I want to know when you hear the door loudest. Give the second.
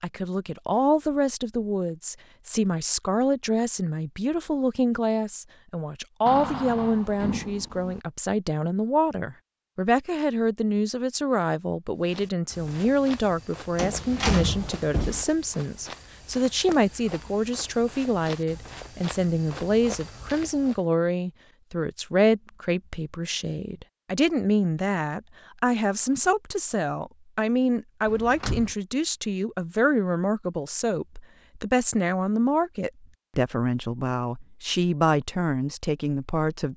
14 s.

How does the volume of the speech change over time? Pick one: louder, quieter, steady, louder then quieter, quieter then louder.
steady.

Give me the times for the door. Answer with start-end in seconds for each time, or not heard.
6.2-8.0, 13.8-15.2, 28.1-28.7.